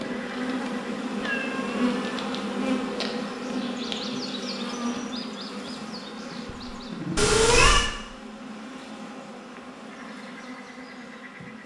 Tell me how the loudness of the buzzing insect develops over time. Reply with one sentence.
The loudness of the buzzing insect goes down.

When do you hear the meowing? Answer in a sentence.
The meowing can be heard from 1.1 to 2.0 s and from 7.2 to 7.9 s.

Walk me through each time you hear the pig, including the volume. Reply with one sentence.
You can't hear the pig here.